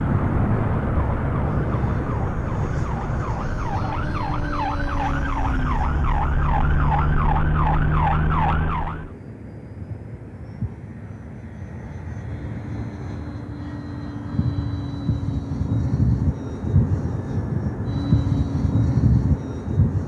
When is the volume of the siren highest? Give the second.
8 s.